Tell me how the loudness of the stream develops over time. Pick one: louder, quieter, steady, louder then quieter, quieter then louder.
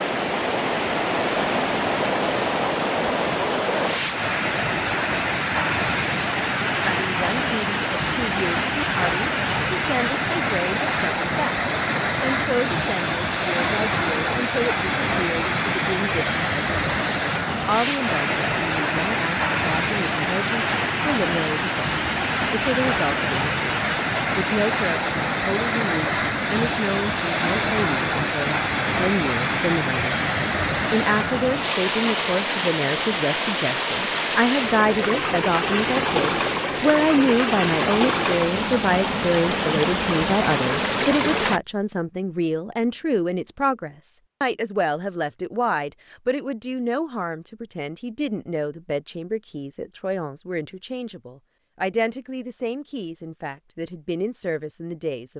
steady.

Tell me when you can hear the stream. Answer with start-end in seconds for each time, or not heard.
0.0-41.6.